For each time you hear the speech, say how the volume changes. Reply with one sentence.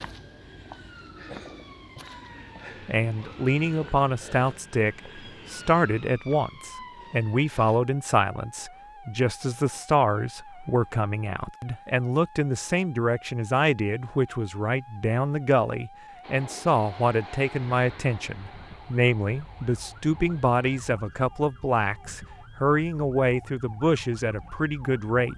The speech can be heard from 2.9 to 25.3 s, at a steady volume.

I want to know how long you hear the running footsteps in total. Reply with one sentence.
You can't hear the running footsteps here.